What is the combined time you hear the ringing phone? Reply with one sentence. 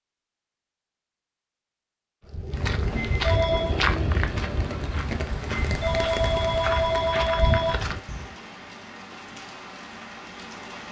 The ringing phone can be heard for 3 seconds in total.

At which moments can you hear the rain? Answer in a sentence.
The rain can be heard from 2.5 to 10.8 s.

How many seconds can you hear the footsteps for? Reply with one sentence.
The footsteps can be heard for 6 seconds in total.